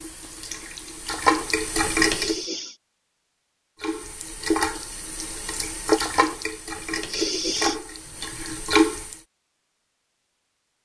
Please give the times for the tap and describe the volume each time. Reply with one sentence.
You can hear the tap briefly from 0.0 to 2.5 s; and from 3.8 to 9.2 s, getting quieter.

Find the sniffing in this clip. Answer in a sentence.
You can hear the sniffing from 2.1 to 2.8 s and from 7.0 to 7.8 s.